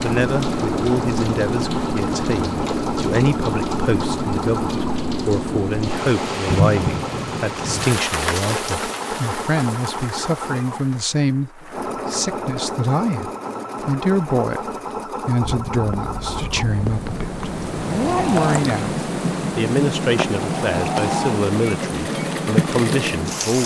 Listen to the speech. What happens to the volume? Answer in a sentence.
The loudness of the speech stays about the same.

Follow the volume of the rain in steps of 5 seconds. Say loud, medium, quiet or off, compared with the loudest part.
loud, loud, quiet, loud, loud.